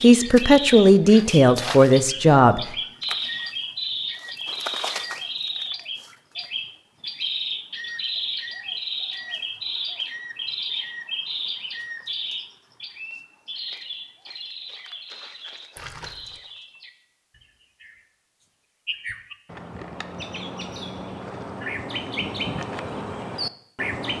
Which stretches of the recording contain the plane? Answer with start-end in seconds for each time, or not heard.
not heard.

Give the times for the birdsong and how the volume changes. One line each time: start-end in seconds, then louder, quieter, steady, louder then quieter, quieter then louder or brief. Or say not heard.
0.0-24.1 quieter then louder.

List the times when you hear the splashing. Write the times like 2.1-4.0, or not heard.
15.8-16.4.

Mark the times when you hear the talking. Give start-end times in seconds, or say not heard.
0.0-2.8.